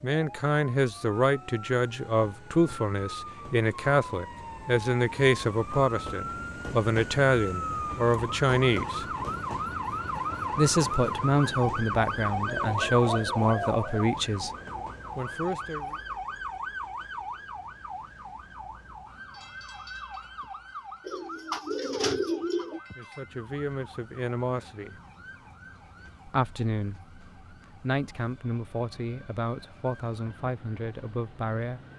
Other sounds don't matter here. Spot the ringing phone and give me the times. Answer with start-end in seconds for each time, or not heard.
not heard.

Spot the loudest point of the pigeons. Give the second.
22 s.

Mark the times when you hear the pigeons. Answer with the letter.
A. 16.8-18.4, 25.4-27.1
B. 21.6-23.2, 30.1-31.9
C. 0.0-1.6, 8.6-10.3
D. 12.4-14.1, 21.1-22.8
D.